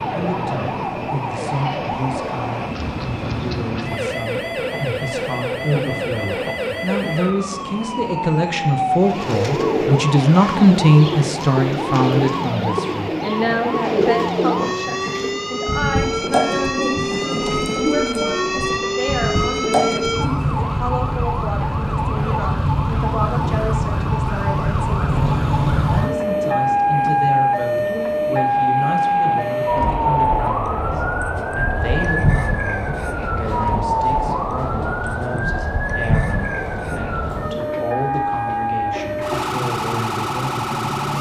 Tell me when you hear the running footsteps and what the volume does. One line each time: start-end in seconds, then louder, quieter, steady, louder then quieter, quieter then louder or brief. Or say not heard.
not heard.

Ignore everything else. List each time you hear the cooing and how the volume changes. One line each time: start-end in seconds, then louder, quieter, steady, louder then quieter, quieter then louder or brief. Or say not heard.
9.0-20.4 steady.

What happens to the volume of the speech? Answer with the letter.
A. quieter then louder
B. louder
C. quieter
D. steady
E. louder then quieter
E.